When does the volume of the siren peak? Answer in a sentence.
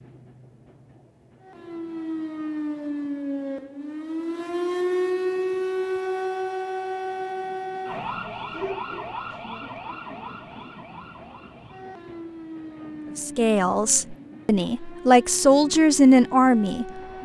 The volume of the siren peaks at 5 seconds.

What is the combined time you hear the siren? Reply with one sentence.
You can hear the siren for 16 seconds altogether.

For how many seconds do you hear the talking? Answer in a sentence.
The talking can be heard for 4 seconds in total.